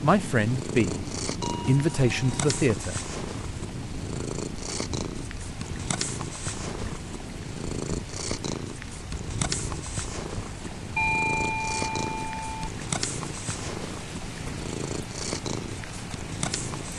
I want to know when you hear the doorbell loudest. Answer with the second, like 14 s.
11 s.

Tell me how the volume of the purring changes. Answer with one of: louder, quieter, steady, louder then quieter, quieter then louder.
steady.